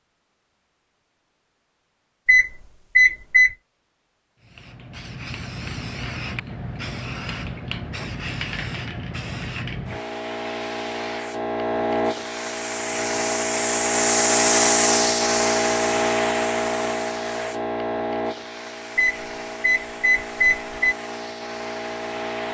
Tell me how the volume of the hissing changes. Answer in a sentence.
The loudness of the hissing goes up, then down.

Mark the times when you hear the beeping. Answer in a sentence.
The beeping can be heard from 2.2 to 3.5 s and from 18.9 to 20.8 s.